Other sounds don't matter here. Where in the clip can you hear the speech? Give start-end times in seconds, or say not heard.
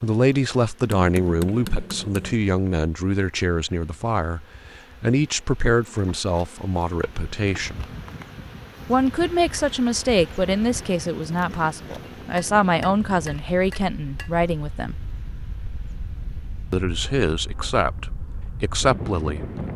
0.0-7.9, 8.8-14.9, 16.7-19.4.